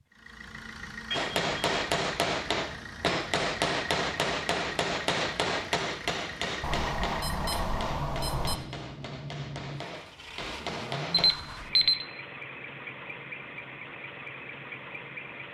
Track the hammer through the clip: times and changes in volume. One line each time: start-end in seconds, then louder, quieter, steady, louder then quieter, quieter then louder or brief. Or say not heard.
1.1-11.3 quieter.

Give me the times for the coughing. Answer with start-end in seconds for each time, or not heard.
not heard.